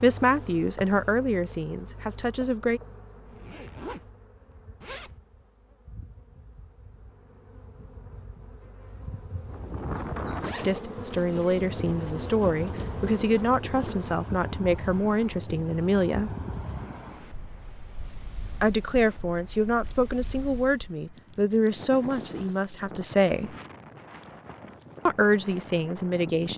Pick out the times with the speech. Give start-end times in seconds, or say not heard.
0.0-2.8, 10.6-16.3, 18.6-23.6, 25.1-26.5.